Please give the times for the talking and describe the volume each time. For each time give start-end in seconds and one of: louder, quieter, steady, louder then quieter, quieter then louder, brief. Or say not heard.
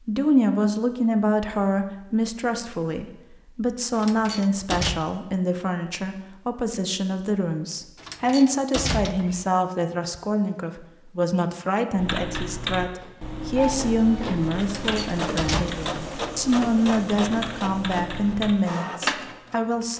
0.1-19.9 steady.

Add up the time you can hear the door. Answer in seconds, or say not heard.
4 s.